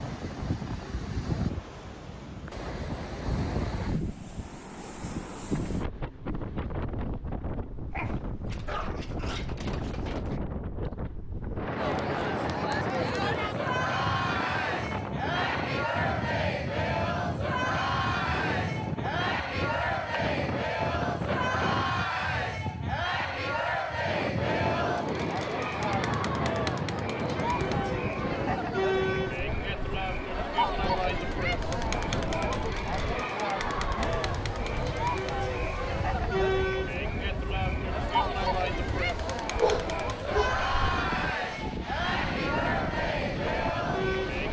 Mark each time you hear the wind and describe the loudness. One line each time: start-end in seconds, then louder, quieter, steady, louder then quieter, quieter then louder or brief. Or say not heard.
0.0-44.4 steady.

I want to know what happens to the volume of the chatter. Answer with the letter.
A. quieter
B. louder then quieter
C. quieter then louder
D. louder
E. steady
E.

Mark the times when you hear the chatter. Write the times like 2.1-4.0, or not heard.
11.8-44.4.